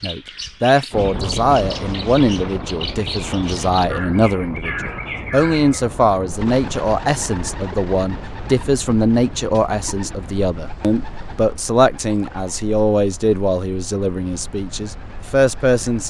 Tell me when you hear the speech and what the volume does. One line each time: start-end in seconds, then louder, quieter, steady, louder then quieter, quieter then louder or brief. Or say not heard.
0.0-16.0 steady.